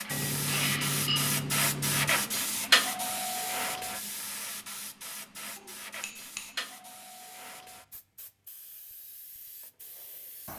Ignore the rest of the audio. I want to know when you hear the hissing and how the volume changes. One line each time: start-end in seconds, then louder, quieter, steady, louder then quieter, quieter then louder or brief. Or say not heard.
0.0-10.5 quieter.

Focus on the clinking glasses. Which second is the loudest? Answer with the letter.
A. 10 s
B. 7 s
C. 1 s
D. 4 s
C.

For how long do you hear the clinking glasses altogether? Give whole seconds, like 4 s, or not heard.
3 s.